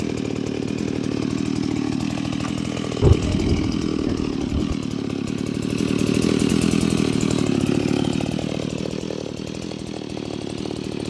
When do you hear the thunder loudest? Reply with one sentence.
The loudest moment of the thunder is at 3 seconds.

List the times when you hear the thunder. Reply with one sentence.
The thunder can be heard from 3.0 to 4.8 s.